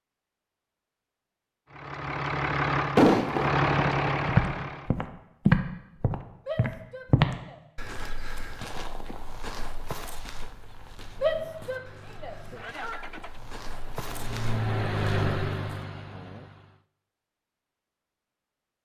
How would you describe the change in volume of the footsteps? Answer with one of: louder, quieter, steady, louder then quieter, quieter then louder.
quieter then louder.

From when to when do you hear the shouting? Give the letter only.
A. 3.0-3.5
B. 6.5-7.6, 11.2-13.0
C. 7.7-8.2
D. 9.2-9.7
B.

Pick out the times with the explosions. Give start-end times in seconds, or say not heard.
3.0-3.5.